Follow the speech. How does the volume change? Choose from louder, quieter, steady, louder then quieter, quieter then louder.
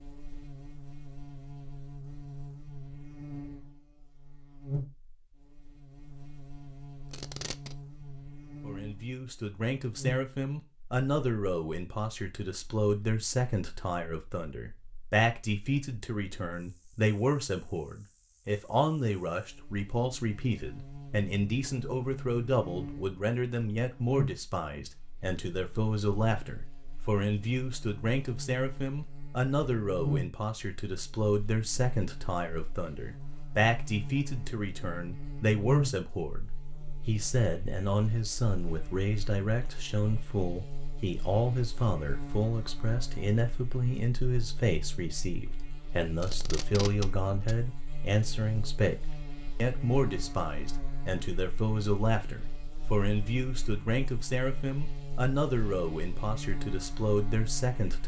steady.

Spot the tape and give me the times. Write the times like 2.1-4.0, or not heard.
7.1-7.8, 46.2-47.5.